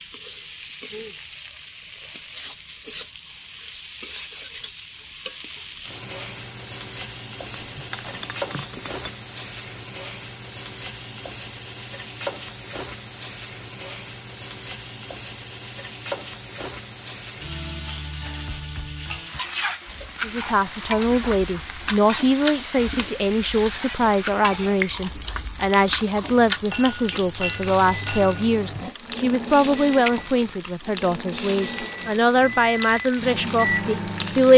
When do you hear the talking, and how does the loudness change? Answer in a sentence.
You can hear the talking from 20.2 to 34.5 s, at a steady volume.